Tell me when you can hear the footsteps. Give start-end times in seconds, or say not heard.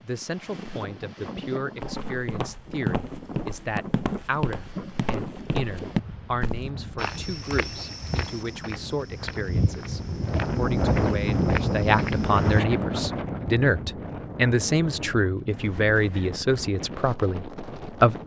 1.8-12.6.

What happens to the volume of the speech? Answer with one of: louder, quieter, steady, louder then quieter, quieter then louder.
louder.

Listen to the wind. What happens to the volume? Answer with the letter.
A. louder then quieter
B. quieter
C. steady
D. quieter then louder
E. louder
A.